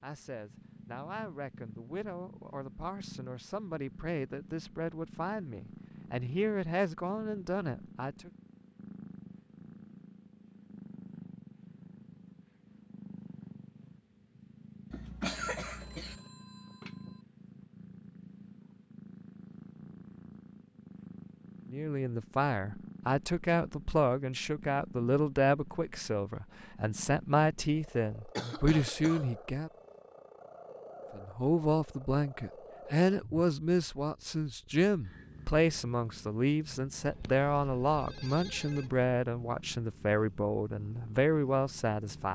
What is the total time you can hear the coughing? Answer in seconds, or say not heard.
2 s.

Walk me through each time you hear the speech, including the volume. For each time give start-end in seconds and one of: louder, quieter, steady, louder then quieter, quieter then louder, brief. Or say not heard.
0.0-8.3 louder
21.7-29.7 steady
31.1-42.3 steady.